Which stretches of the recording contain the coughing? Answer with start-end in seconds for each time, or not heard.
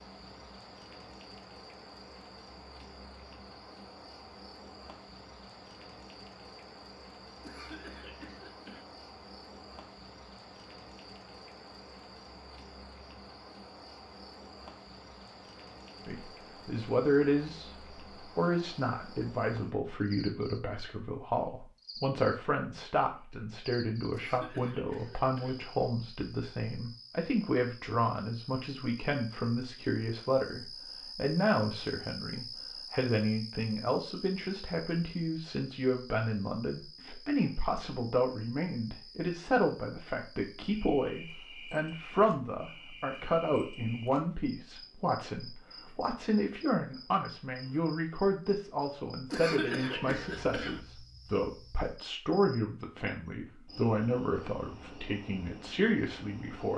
7.4-8.8, 24.1-25.6, 49.3-50.8.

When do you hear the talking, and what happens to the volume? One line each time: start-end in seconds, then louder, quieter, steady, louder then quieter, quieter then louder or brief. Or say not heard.
16.1-56.7 steady.